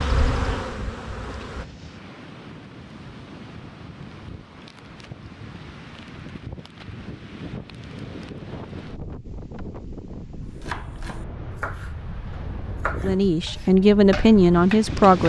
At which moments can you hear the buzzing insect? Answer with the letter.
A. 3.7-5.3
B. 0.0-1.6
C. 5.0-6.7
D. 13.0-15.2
B.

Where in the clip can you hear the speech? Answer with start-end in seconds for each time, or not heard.
13.0-15.2.